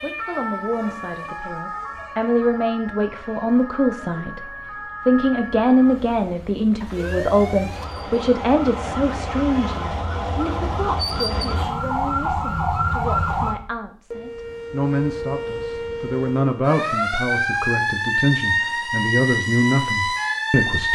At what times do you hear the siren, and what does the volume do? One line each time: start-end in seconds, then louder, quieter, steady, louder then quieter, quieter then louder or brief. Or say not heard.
0.0-20.9 louder.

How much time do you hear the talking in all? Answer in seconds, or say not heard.
20 s.